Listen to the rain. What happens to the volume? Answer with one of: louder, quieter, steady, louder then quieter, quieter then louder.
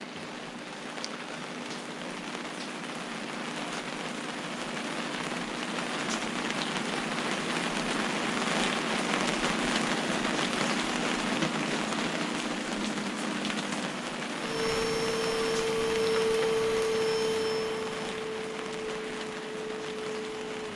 louder then quieter.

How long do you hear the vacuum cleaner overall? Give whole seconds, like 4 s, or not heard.
6 s.